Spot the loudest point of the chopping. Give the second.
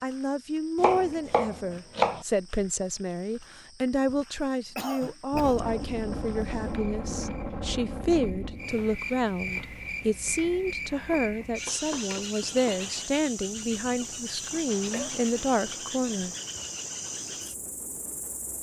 2 s.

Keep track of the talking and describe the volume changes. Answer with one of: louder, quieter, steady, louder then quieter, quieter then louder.
steady.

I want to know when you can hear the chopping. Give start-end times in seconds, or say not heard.
0.8-2.2, 10.9-12.8.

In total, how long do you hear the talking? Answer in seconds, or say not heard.
16 s.